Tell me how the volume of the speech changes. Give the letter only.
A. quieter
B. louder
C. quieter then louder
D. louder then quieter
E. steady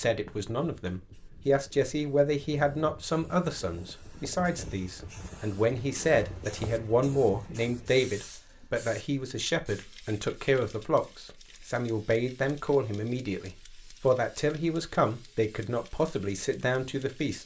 E.